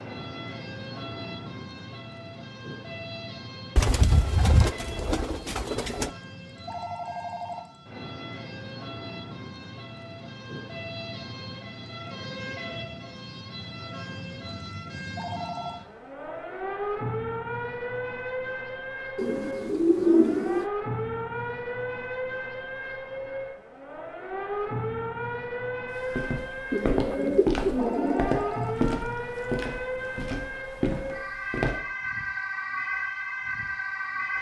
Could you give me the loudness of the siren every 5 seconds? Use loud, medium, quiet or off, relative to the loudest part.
medium, medium, medium, loud, loud, loud, loud.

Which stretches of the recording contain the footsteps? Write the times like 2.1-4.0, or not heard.
25.9-31.8.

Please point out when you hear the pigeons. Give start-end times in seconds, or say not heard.
3.8-6.1, 19.1-20.6, 26.7-28.3.